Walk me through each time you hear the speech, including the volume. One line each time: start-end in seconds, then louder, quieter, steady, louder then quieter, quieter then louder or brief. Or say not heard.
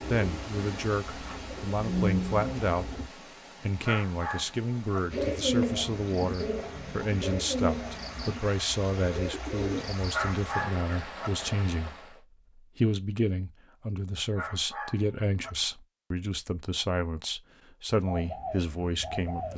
0.1-3.0 brief
3.6-19.5 steady.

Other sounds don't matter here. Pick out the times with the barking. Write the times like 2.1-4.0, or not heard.
3.8-5.0, 10.1-11.3, 14.3-15.5.